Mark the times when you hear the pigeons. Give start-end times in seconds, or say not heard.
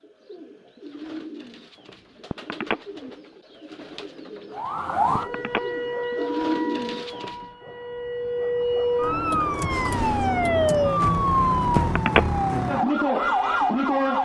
0.0-7.3.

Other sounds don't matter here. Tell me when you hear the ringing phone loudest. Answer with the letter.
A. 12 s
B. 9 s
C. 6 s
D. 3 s
A.